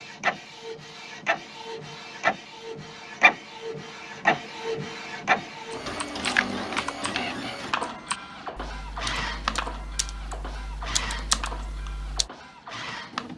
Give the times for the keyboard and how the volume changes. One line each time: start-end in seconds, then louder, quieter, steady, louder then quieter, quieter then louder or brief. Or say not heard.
6.0-12.3 quieter then louder.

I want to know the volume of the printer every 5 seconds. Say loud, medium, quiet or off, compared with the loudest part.
loud, loud, medium.